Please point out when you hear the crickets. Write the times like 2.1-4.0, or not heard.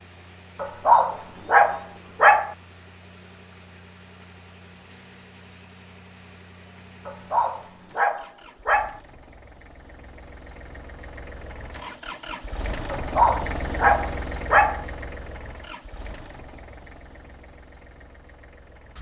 not heard.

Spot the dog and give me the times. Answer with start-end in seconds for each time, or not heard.
0.6-2.5, 7.0-9.0, 12.9-14.8.